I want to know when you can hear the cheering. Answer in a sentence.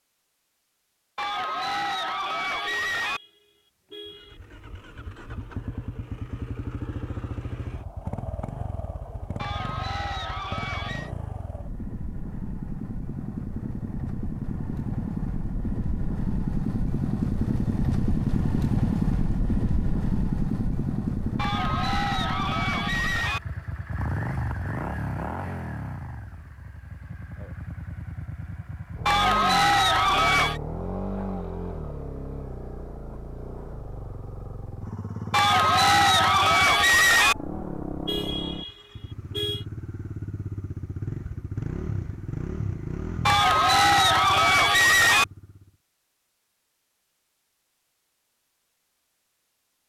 The cheering can be heard from 1.1 to 3.2 s, from 9.3 to 11.1 s, from 21.4 to 23.4 s, from 29.1 to 30.6 s, from 35.3 to 37.4 s and from 43.2 to 45.2 s.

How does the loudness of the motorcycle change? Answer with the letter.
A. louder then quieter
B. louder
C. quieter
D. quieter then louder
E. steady
A.